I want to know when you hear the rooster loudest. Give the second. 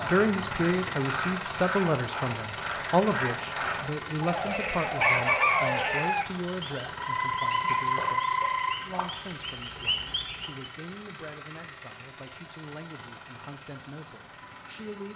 5 s.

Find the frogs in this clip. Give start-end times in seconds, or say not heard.
0.0-10.7.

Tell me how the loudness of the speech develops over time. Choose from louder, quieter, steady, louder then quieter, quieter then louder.
quieter.